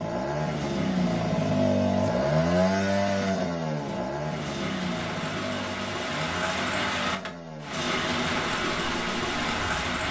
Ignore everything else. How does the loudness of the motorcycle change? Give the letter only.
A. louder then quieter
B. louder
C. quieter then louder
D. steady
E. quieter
E.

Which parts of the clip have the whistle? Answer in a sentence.
You can't hear the whistle here.